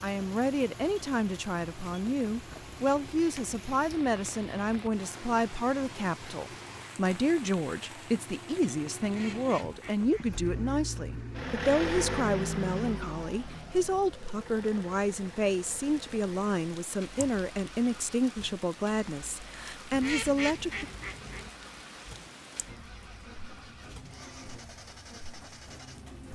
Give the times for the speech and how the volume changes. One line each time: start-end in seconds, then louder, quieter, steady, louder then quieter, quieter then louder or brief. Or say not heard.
0.0-20.9 steady.